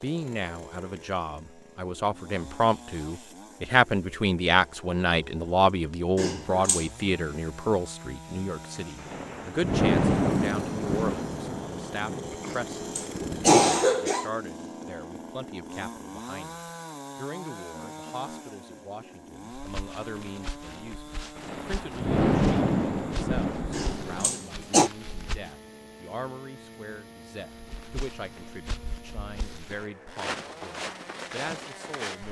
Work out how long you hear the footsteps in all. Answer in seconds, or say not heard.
11 s.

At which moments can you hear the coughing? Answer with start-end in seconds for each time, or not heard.
6.2-6.8, 12.4-14.2, 23.7-24.9.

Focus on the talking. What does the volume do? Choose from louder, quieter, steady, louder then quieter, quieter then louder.
quieter.